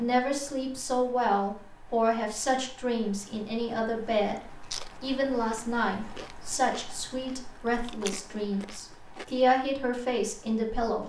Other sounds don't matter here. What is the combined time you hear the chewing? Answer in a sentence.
The chewing can be heard for 5 seconds in total.